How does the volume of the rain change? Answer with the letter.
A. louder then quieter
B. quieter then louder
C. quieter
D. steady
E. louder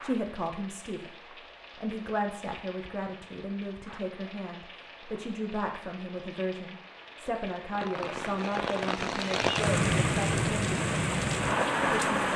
E.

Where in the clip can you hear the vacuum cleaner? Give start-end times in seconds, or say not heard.
not heard.